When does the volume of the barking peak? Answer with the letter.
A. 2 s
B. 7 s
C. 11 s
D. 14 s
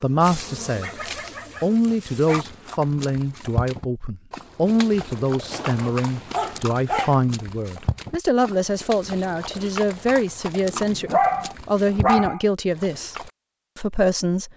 C.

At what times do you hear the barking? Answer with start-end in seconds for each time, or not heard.
0.2-2.5, 5.5-7.2, 10.7-12.4.